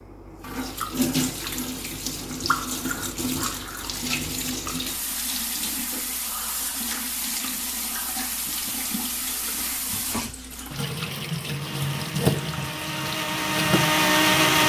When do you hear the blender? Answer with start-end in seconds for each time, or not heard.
11.4-14.6.